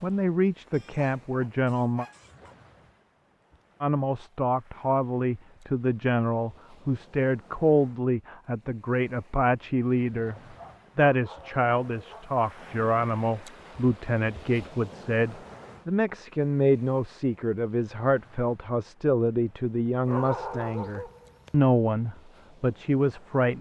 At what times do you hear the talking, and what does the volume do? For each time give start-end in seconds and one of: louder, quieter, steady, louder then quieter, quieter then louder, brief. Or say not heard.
0.0-2.0 brief
3.8-10.3 steady
10.9-23.5 steady.